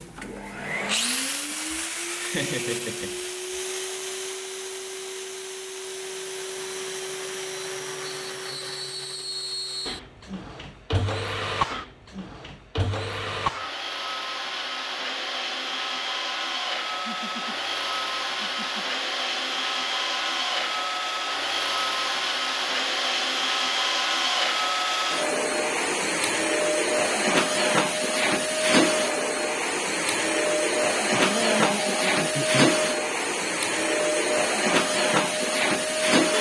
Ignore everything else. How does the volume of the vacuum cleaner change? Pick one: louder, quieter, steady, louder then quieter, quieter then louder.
louder.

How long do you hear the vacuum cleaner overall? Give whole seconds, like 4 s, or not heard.
36 s.